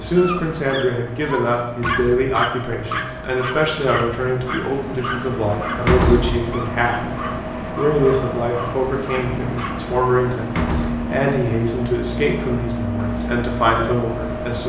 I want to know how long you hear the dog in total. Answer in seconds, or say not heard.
10 s.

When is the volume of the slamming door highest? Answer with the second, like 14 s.
6 s.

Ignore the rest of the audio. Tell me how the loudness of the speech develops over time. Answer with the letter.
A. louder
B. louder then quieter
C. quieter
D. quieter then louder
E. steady
E.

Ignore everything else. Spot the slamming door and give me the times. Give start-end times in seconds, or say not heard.
1.7-2.3, 5.8-6.5, 10.4-11.1.